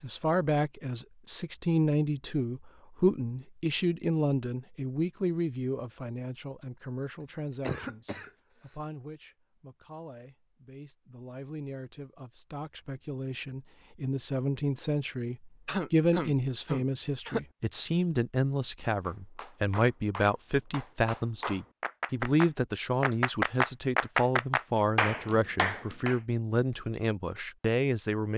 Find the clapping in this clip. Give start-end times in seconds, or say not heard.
19.0-26.2.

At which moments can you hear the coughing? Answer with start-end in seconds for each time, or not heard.
7.2-8.8, 15.7-17.4.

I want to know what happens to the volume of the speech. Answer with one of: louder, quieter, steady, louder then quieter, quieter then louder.
quieter then louder.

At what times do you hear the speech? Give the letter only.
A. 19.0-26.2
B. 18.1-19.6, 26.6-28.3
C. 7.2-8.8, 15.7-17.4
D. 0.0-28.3
D.